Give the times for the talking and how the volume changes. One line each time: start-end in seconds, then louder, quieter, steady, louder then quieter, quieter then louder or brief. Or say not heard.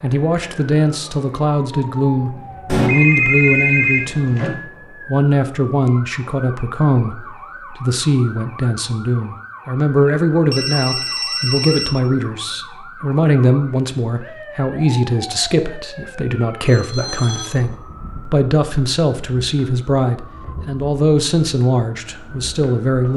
0.0-4.5 steady
5.0-23.1 steady.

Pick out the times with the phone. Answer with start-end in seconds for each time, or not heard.
2.6-4.5, 10.5-11.9, 16.6-17.5.